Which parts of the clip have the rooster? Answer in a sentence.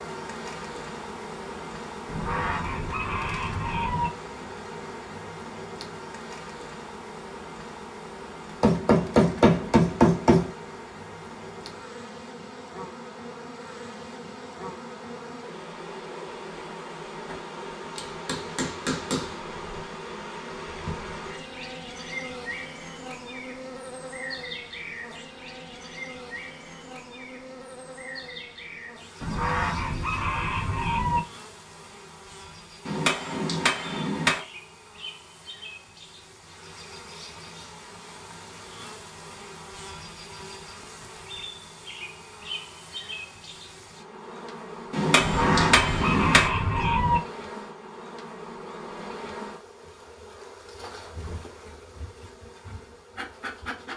You can hear the rooster from 2.0 to 4.1 s, from 29.2 to 31.2 s and from 45.1 to 47.2 s.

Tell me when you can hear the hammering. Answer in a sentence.
You can hear the hammering from 8.6 to 10.5 s, from 17.9 to 19.4 s, from 32.9 to 34.4 s and from 44.9 to 46.5 s.